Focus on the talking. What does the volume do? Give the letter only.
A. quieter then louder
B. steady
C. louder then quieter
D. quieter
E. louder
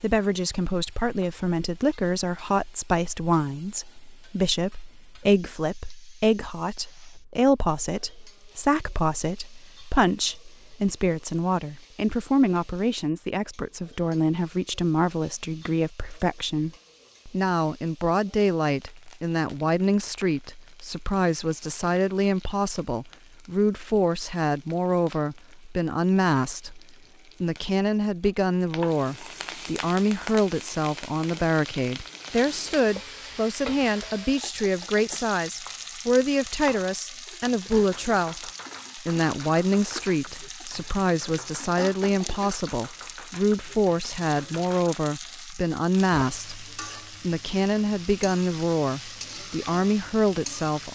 B.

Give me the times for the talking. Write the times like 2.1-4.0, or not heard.
0.0-50.9.